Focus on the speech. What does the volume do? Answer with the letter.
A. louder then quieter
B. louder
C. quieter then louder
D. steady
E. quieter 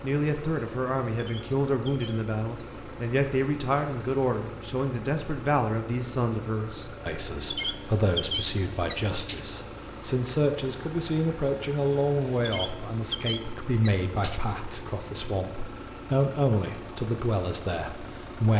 D.